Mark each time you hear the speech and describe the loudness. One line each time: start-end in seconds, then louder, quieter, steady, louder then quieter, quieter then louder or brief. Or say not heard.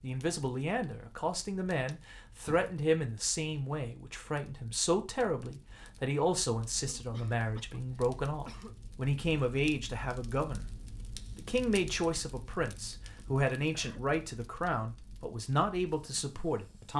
0.0-16.9 steady.